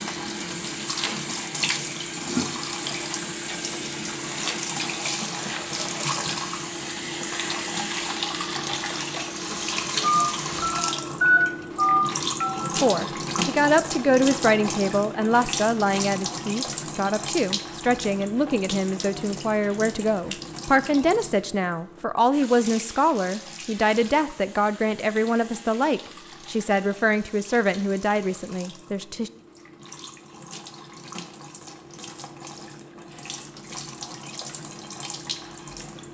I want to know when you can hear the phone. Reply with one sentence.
You can hear the phone from 10.0 to 12.6 s.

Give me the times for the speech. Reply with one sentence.
You can hear the speech from 12.8 to 29.3 s.